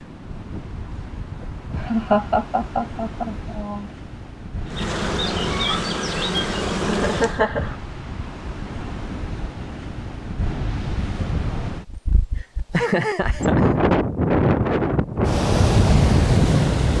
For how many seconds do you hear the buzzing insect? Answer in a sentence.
The buzzing insect can be heard for 3 seconds in total.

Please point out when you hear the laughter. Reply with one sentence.
You can hear the laughter from 1.8 to 3.9 s, from 6.8 to 7.8 s and from 12.3 to 13.7 s.